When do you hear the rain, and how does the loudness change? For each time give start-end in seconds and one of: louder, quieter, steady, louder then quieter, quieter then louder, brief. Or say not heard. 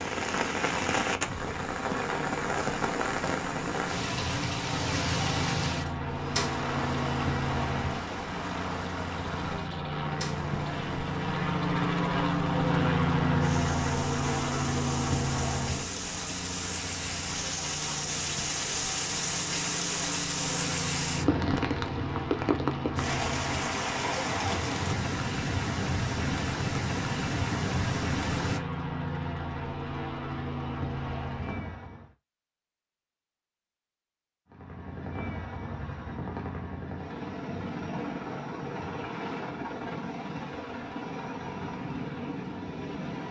0.0-28.6 quieter then louder.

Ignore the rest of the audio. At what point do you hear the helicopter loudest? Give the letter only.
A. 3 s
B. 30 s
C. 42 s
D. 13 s
D.